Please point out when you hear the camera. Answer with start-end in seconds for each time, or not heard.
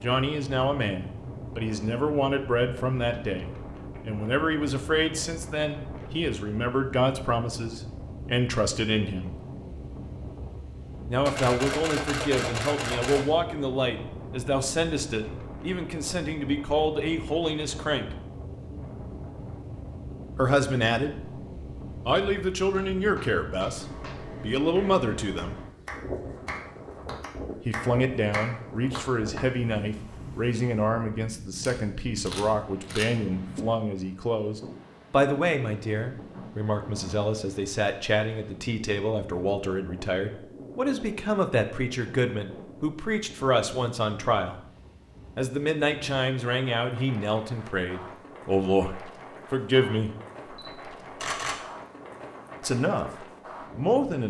11.2-13.2, 31.6-33.0, 50.5-51.6.